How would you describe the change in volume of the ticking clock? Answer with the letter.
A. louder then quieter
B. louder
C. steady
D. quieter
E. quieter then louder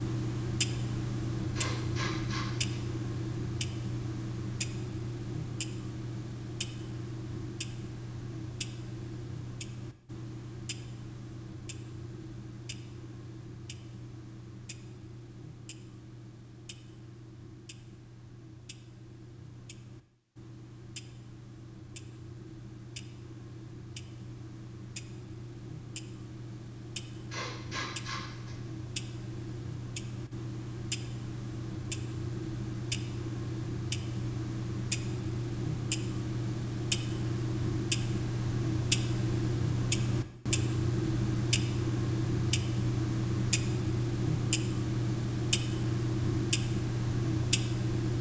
E.